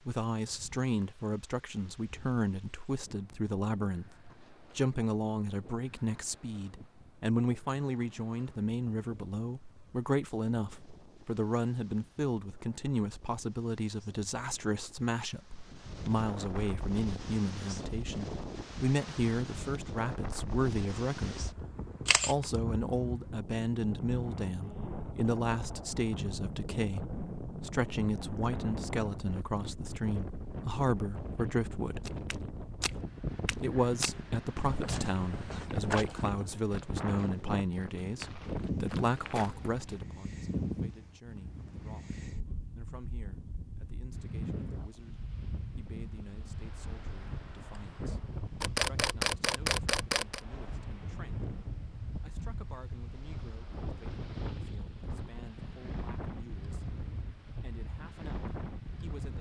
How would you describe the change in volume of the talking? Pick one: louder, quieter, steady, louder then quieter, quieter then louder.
quieter.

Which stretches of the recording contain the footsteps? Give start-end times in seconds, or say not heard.
32.0-40.0.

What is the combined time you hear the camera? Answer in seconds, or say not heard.
3 s.